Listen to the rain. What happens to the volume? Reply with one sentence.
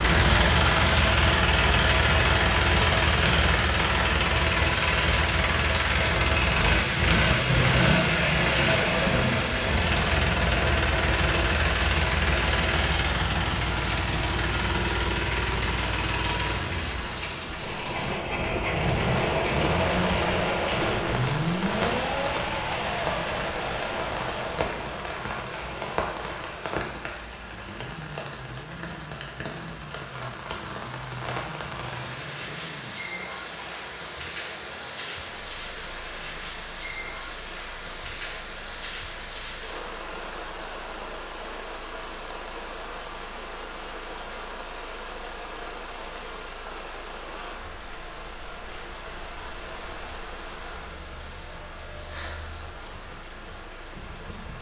The volume of the rain goes down.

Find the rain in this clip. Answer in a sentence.
The rain can be heard from 0.0 to 54.5 s.